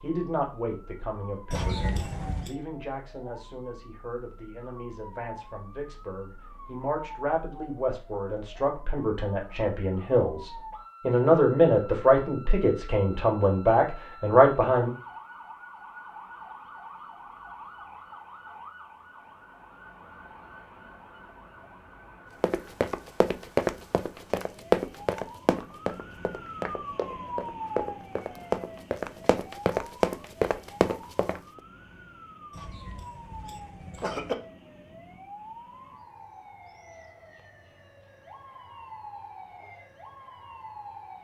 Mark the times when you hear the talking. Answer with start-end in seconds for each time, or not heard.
0.0-14.9.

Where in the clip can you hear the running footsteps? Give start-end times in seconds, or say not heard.
22.4-31.4.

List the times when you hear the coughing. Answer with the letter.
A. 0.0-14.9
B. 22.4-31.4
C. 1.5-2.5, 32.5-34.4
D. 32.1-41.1
C.